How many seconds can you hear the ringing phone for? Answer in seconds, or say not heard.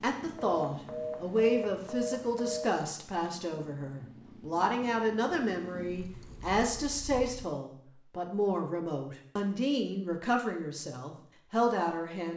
2 s.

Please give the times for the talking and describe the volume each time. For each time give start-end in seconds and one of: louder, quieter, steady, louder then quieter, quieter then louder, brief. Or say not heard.
0.0-12.3 steady.